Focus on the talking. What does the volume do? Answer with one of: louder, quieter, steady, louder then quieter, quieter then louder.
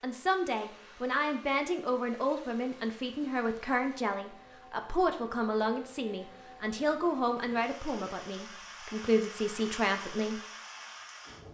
steady.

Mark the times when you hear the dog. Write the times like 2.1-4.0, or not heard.
not heard.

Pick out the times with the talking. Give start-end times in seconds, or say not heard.
0.0-10.4.